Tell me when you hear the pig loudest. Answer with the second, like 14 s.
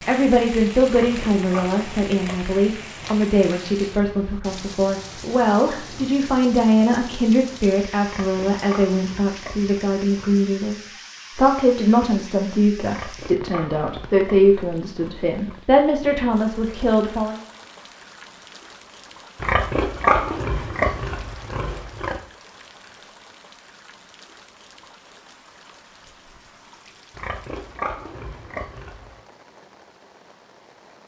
20 s.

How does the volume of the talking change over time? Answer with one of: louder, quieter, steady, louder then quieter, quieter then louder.
steady.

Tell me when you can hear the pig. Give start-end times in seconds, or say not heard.
1.0-3.2, 8.0-10.4, 12.8-15.6, 19.4-22.2, 27.1-29.2.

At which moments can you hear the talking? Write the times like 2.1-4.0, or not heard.
0.1-17.4.